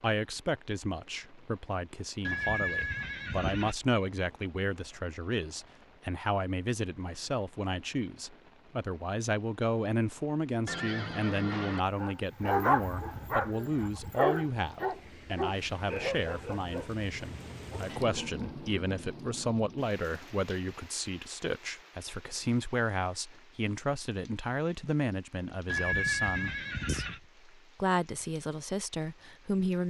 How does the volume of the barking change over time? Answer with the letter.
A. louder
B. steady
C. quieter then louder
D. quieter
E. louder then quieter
D.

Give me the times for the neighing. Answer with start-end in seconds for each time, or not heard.
2.2-3.8, 10.7-11.8, 25.6-27.2.